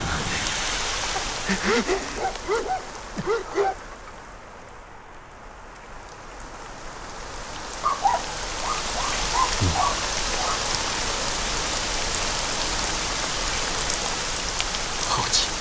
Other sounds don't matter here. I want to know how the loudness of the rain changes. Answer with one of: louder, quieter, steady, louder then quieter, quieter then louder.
quieter then louder.